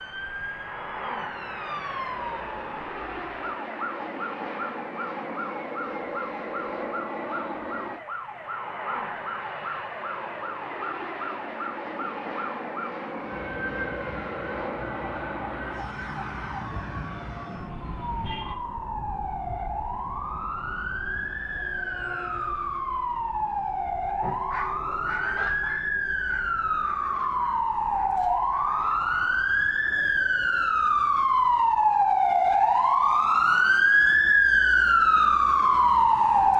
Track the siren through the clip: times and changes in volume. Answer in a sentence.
The siren can be heard from 0.0 to 36.5 s, getting louder.